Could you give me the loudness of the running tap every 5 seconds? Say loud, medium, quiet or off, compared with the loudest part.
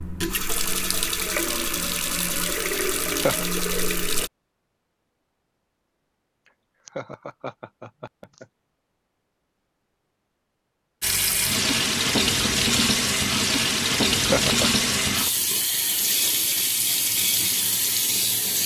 medium, off, loud, loud.